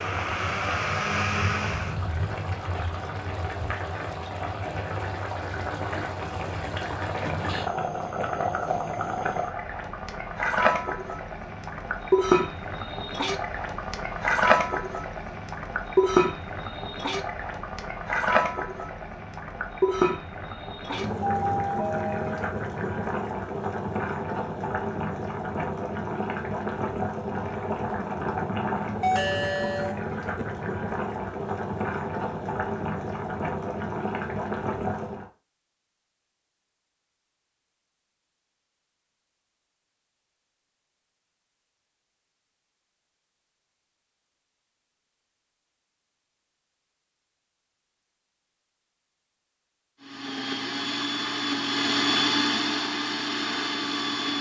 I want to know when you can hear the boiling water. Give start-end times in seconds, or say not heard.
0.0-35.2.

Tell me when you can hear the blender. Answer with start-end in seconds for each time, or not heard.
0.0-1.9, 50.0-54.3.